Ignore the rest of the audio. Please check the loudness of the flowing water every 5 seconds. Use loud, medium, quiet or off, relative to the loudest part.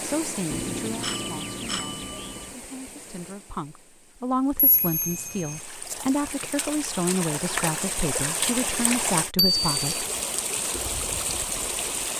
medium, loud, loud.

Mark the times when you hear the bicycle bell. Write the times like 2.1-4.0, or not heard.
0.5-2.5, 4.5-5.6, 9.3-10.1.